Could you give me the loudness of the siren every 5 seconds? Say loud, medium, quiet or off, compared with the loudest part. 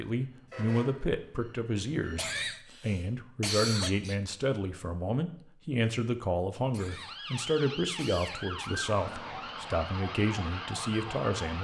off, loud, loud.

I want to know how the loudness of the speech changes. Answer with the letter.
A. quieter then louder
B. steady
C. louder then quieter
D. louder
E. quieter
B.